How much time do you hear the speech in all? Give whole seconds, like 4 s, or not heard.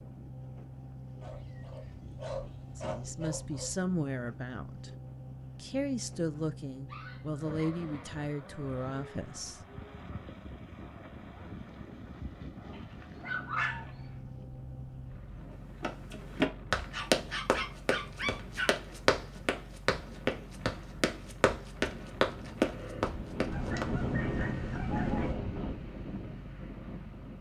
6 s.